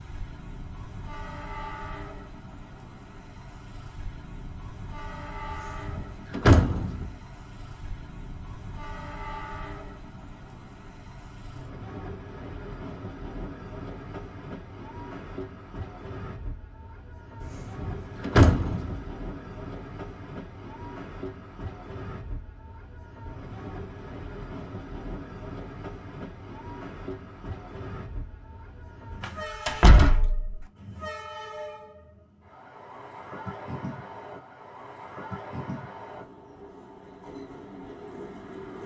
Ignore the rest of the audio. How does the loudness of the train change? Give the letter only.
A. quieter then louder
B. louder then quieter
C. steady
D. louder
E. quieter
C.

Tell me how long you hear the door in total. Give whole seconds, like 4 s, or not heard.
5 s.